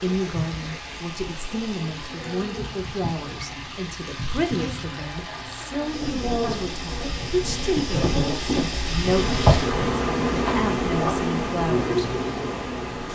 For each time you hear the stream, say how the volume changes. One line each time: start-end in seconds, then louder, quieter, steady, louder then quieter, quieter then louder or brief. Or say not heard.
0.0-13.1 louder.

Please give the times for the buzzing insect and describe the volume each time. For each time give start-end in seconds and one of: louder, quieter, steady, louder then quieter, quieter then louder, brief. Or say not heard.
0.0-13.1 louder.